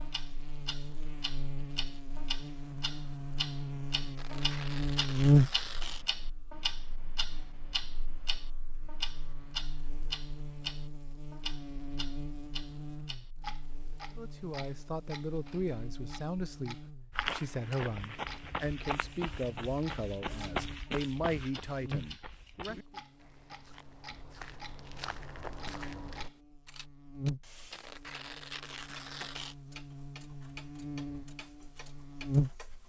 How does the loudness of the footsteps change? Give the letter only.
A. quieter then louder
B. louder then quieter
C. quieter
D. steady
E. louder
A.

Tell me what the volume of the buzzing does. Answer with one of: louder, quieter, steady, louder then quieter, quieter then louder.
quieter then louder.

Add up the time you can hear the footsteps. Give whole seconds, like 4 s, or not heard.
9 s.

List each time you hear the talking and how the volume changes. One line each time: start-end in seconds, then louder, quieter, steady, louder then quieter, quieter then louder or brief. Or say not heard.
14.2-23.0 steady.